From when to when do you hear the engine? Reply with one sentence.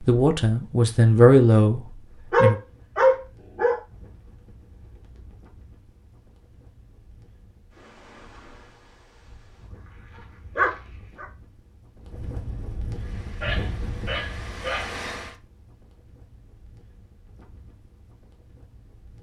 The engine can be heard from 12.9 to 15.3 s.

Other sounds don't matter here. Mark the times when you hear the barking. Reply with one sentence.
The barking can be heard from 2.3 to 3.8 s, from 10.4 to 11.2 s and from 13.4 to 15.0 s.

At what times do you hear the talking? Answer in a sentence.
The talking can be heard from 0.0 to 2.6 s.